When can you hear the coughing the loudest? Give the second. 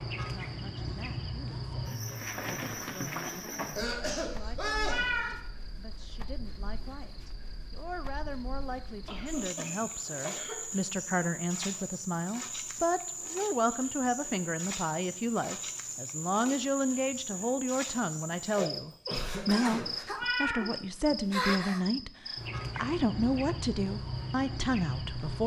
5 s.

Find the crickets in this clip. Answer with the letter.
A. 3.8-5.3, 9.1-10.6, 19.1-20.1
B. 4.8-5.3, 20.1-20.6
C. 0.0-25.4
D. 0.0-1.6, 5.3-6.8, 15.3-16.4
C.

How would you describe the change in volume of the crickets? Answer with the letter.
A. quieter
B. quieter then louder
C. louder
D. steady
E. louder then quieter
B.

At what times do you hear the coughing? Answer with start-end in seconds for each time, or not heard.
3.8-5.3, 9.1-10.6, 19.1-20.1.